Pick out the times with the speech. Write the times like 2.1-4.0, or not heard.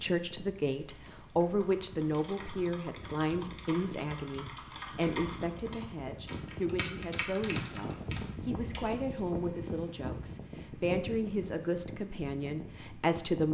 0.0-13.4.